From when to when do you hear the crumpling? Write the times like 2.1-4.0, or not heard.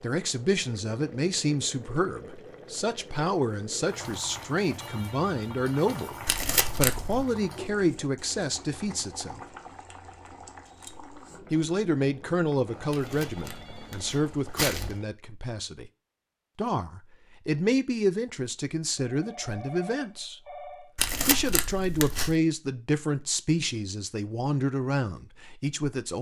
6.2-7.2, 12.9-14.9, 20.9-22.4.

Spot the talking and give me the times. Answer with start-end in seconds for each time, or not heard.
0.0-9.4, 11.5-15.9, 16.6-20.4, 21.2-26.1.